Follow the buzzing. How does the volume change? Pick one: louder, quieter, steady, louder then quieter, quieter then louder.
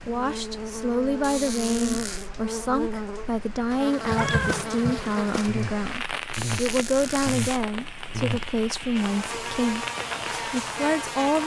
steady.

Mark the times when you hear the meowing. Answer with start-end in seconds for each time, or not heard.
4.0-5.0.